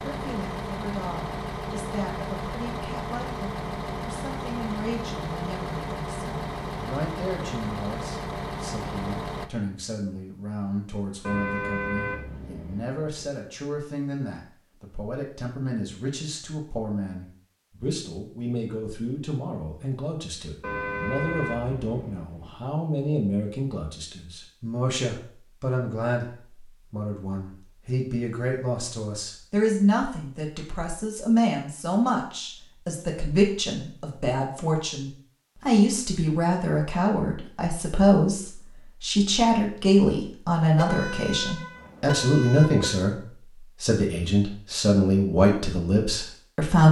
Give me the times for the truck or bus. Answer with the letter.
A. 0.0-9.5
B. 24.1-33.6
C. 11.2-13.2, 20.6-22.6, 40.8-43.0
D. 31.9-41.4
A.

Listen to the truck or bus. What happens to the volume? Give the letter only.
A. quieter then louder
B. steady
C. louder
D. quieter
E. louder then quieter
B.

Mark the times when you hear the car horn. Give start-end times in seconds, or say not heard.
11.2-13.2, 20.6-22.6, 40.8-43.0.